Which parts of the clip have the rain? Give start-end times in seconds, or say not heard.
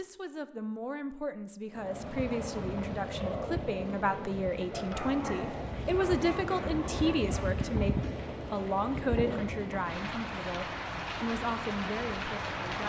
1.7-12.8.